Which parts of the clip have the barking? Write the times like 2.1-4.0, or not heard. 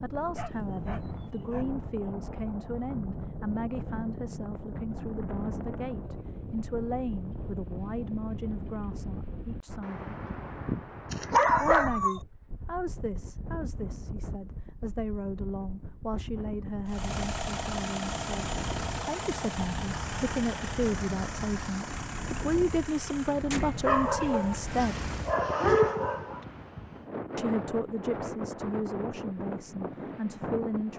0.3-1.6, 11.1-12.2, 23.9-26.4.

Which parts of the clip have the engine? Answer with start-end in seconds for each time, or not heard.
16.9-25.4.